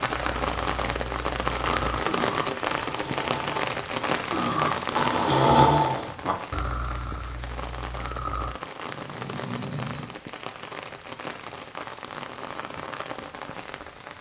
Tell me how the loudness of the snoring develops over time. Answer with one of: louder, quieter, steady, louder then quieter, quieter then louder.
louder then quieter.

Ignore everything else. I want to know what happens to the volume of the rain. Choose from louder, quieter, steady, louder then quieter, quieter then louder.
quieter.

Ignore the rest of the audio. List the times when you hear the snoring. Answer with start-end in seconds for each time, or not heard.
0.1-10.2.